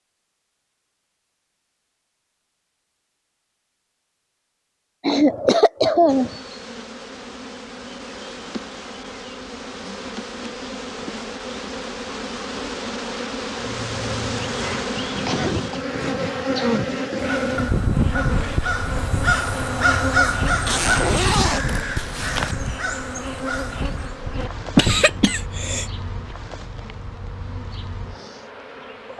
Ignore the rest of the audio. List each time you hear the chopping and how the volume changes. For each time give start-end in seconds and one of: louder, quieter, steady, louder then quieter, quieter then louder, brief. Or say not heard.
not heard.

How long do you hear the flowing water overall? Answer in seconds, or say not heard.
not heard.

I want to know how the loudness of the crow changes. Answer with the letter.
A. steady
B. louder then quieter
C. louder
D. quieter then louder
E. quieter
B.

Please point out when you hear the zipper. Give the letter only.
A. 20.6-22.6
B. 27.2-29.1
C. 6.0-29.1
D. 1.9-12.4
A.